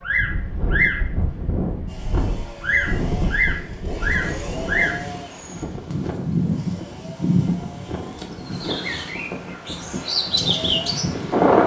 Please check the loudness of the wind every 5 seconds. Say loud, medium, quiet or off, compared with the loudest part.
medium, quiet, loud.